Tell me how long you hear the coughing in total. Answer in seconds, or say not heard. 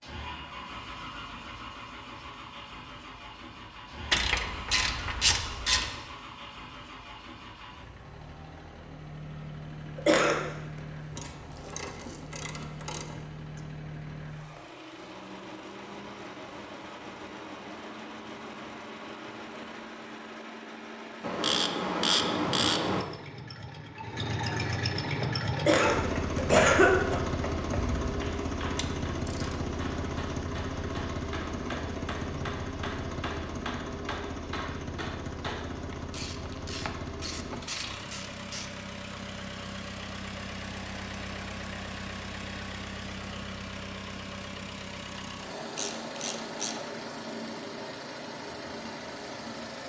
2 s.